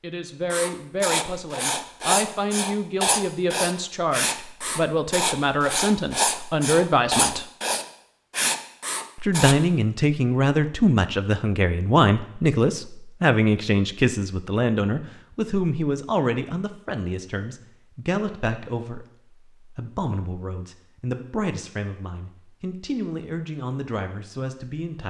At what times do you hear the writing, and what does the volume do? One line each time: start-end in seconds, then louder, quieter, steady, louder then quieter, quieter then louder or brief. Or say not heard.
0.5-9.6 steady.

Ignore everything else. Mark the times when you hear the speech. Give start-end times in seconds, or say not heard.
0.0-7.5, 9.2-25.0.